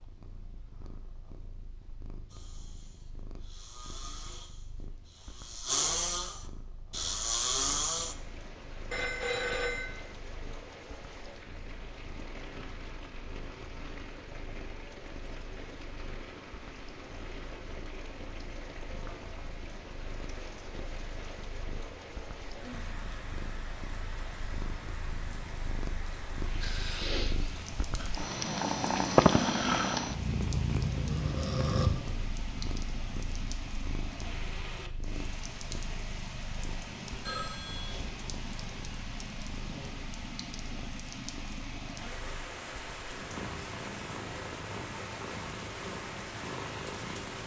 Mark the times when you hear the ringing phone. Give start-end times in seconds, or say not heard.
8.9-10.0, 37.2-38.0.